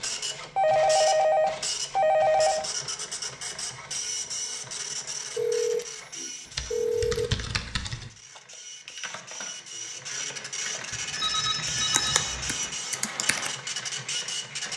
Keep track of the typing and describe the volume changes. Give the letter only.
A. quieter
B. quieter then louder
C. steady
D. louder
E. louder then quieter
B.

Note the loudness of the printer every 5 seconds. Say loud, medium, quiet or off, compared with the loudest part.
loud, medium, loud.